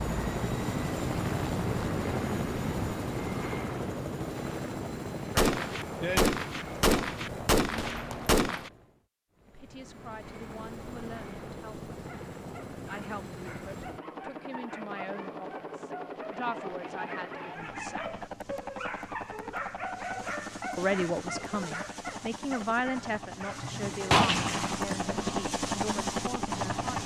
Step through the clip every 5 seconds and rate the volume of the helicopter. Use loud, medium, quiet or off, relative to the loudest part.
loud, medium, medium, medium, medium, loud.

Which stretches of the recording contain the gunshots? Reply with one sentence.
The gunshots can be heard from 5.3 to 8.7 s and from 23.6 to 24.8 s.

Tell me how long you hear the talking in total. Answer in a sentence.
You can hear the talking for 14 seconds altogether.